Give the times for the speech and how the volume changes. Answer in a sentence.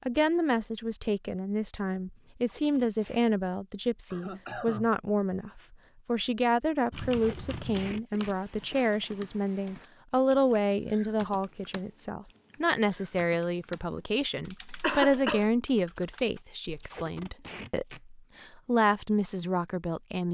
The speech can be heard from 0.0 to 20.3 s, at a steady volume.